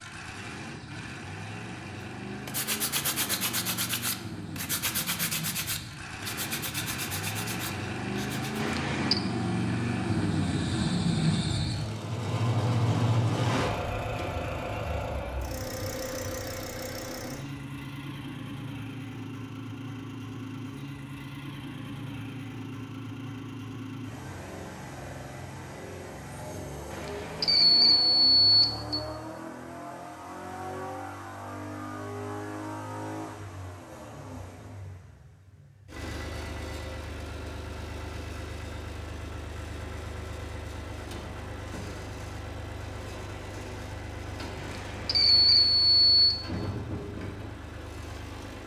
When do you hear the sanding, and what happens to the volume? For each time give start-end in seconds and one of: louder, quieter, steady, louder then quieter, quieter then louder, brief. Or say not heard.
2.5-8.8 quieter.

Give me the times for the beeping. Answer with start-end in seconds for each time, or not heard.
8.6-9.2, 26.9-29.0, 44.6-46.4.